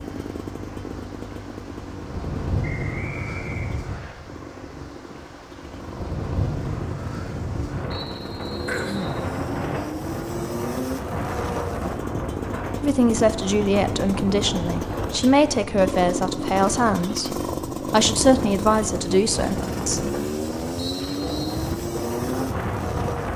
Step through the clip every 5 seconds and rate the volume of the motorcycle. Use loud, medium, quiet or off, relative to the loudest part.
medium, medium, loud, loud, loud.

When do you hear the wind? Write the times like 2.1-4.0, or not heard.
0.0-23.3.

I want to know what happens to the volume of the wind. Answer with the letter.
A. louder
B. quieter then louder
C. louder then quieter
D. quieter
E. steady
E.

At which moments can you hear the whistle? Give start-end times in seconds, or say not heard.
2.6-4.2, 7.9-9.2, 20.8-21.6.